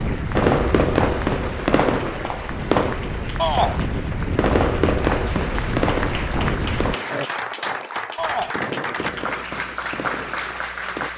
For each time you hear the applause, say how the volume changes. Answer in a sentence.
The applause can be heard from 0.0 to 11.1 s, getting louder.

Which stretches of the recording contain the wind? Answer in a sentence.
The wind can be heard from 0.0 to 7.0 s.